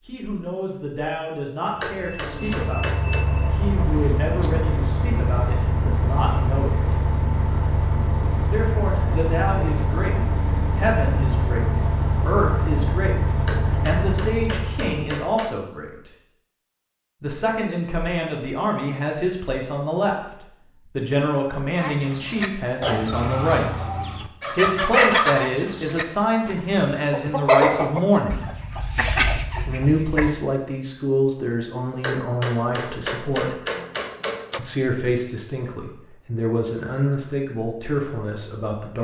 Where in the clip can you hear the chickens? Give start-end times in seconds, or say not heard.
21.8-30.3.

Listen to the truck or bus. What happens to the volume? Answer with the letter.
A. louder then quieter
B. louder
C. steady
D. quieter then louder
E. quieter
C.